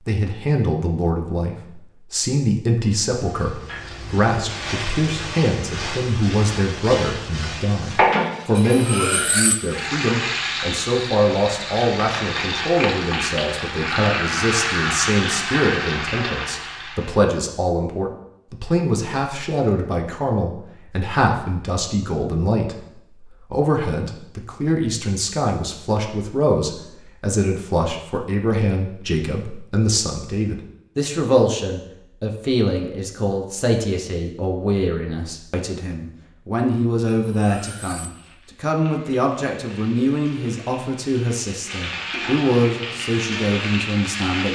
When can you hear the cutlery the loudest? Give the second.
9 s.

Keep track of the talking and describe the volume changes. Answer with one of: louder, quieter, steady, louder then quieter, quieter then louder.
steady.